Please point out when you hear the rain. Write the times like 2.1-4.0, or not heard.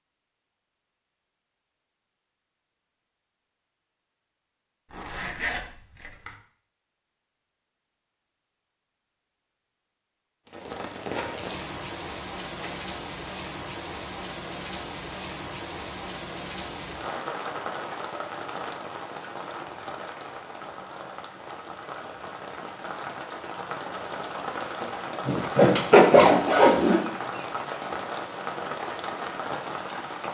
10.4-30.2.